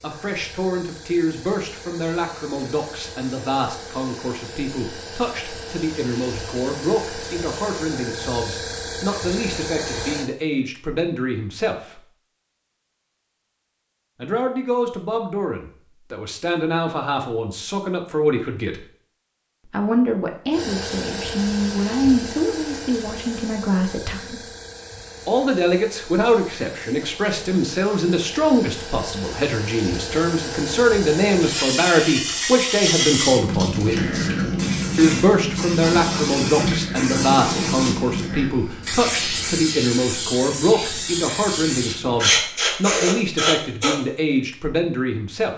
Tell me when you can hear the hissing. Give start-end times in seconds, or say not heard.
0.0-10.3, 20.5-44.0.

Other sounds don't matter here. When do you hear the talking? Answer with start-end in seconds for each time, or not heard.
0.0-12.0, 14.2-18.9, 19.6-24.4, 25.2-34.3, 35.0-45.5.